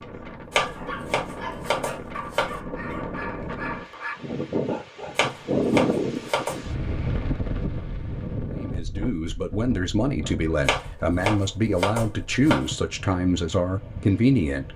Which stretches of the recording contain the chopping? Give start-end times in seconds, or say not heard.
0.5-2.6, 5.2-6.7, 10.7-12.7.